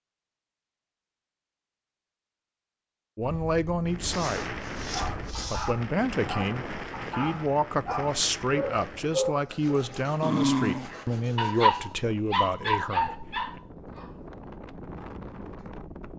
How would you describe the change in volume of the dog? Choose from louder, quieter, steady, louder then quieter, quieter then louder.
louder.